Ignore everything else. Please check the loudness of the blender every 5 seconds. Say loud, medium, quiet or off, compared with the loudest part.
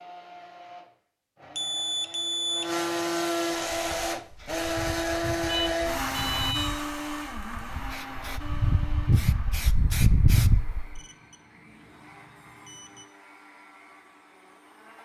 loud, loud, quiet.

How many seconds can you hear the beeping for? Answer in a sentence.
You can hear the beeping for 5 seconds altogether.